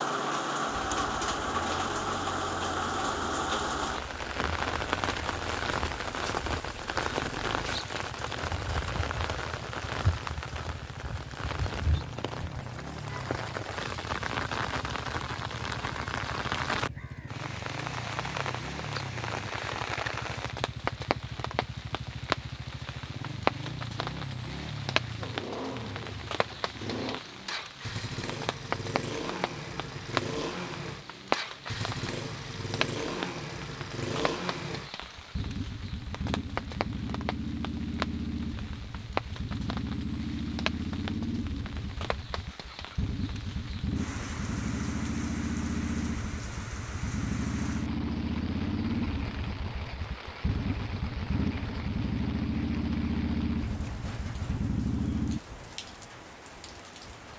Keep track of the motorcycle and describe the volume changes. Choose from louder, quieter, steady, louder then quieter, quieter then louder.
louder.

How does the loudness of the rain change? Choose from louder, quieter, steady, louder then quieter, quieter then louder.
quieter.